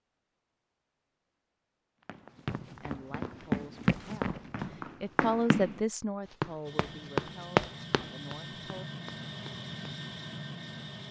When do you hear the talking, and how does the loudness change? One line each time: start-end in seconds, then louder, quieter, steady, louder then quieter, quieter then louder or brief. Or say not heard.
2.6-8.8 louder then quieter.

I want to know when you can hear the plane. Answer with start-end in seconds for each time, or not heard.
6.7-11.0.